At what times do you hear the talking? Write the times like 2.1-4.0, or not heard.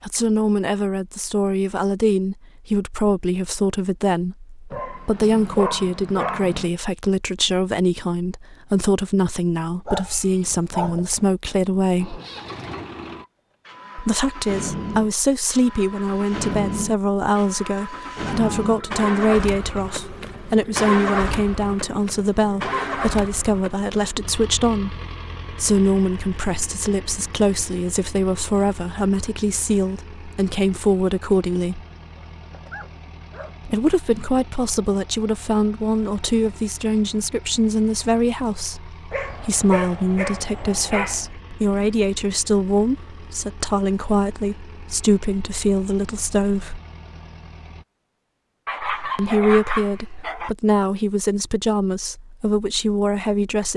0.0-12.2, 13.9-31.9, 33.6-46.8, 49.1-53.7.